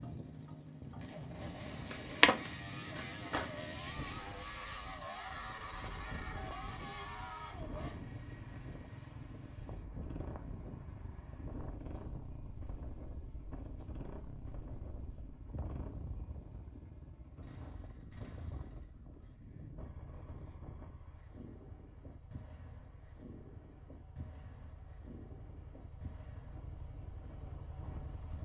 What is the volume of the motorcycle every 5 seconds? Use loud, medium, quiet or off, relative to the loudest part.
loud, loud, medium, medium, quiet, medium.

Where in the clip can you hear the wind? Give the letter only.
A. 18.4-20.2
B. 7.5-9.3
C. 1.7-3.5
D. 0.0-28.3
D.